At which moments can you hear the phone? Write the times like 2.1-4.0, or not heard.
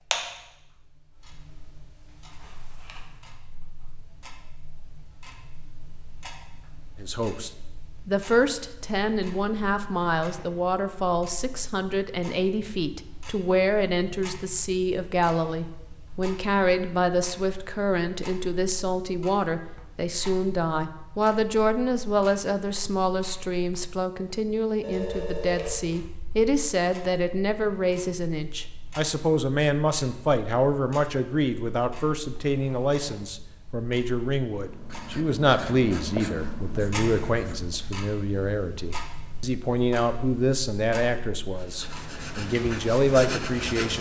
24.8-26.3.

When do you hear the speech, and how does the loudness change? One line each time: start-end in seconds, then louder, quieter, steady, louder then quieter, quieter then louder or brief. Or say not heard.
7.0-43.9 steady.